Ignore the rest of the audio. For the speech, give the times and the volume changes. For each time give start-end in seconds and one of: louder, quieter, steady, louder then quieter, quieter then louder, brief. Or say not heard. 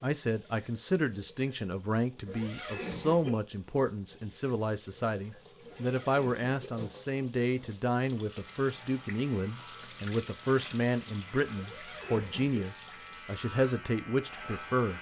0.0-14.9 steady.